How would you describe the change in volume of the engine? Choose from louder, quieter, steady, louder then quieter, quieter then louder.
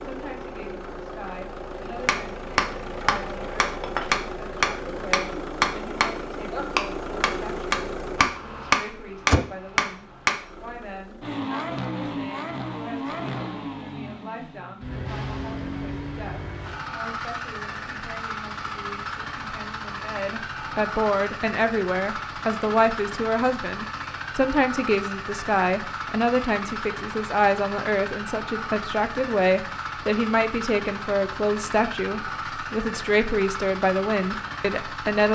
steady.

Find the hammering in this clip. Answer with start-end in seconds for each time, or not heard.
2.0-10.4.